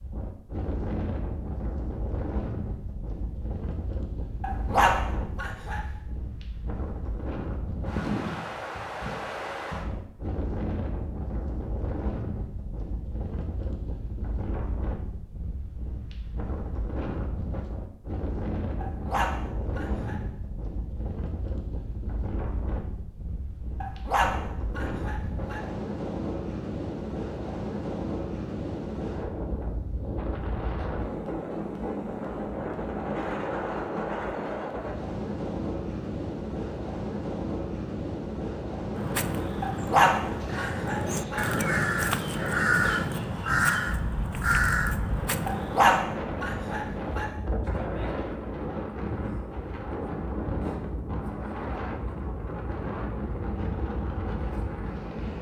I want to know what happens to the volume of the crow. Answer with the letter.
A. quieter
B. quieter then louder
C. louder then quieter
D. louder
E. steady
D.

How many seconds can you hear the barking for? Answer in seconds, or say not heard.
8 s.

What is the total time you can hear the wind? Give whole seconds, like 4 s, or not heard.
55 s.